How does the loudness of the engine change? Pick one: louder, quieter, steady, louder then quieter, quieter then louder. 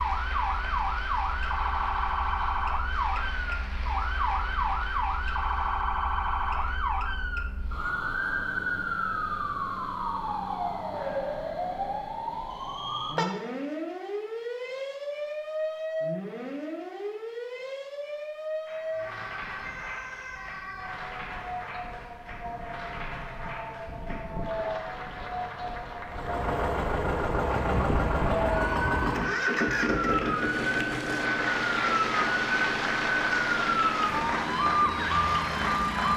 quieter.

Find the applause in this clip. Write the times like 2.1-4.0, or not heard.
0.0-6.8, 18.6-36.1.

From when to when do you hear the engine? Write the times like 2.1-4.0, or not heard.
26.1-36.1.